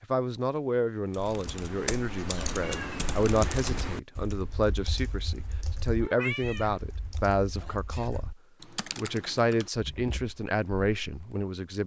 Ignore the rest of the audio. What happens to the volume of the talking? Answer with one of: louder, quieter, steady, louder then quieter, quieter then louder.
steady.